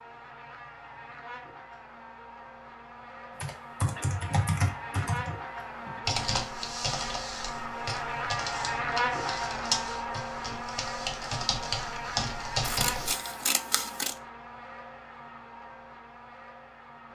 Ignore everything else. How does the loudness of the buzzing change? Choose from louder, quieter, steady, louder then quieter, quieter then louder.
louder then quieter.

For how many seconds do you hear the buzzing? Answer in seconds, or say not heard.
17 s.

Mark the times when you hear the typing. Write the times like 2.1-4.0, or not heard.
3.4-13.2.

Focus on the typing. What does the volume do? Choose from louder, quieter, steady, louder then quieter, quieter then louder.
quieter then louder.